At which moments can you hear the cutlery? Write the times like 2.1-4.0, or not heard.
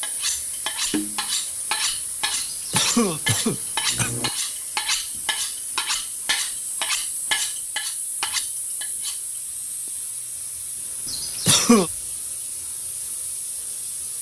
0.0-9.4.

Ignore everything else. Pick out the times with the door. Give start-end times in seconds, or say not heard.
not heard.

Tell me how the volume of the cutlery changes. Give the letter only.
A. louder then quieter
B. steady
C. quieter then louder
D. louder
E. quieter
B.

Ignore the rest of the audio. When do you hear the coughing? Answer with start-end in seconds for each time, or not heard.
2.4-4.3, 11.1-11.9.